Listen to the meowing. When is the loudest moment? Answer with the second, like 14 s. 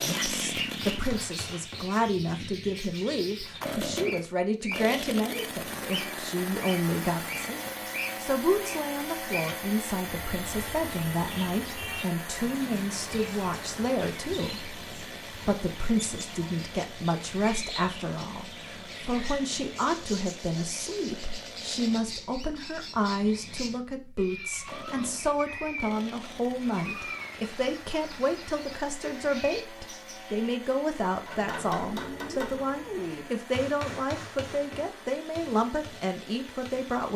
33 s.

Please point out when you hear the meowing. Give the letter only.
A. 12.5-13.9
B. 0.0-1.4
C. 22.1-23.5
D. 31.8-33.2
D.